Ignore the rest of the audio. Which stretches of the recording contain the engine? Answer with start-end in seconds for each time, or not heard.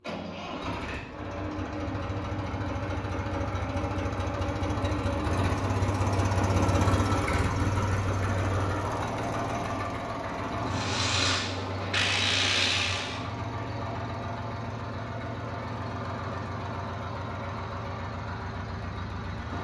0.0-19.5.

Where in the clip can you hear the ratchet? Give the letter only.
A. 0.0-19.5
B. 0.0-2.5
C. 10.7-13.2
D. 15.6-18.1
C.